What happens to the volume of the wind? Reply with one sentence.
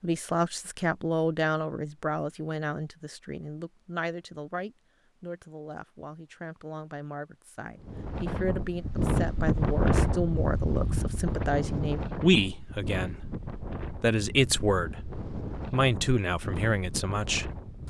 The loudness of the wind goes down.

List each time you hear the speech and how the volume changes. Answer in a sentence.
You can hear the speech from 0.0 to 17.8 s, getting quieter then louder.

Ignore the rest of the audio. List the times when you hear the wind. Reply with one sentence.
The wind can be heard from 7.8 to 17.8 s.